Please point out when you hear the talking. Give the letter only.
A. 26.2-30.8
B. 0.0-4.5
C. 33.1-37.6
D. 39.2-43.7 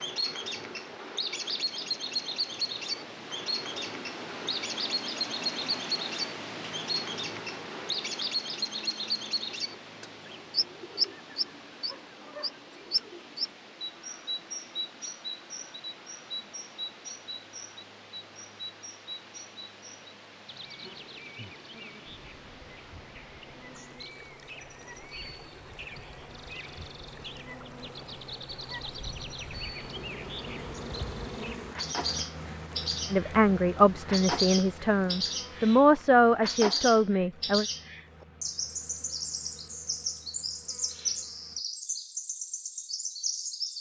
C.